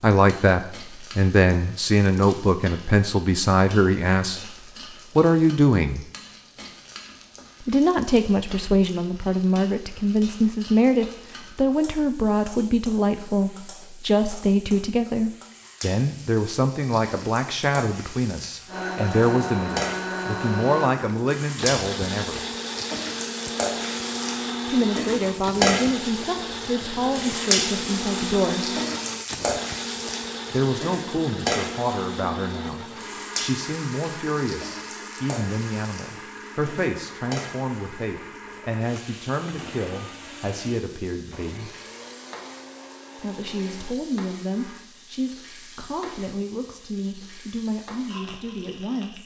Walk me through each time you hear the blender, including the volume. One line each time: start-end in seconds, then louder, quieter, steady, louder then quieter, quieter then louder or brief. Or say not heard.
18.6-44.9 quieter.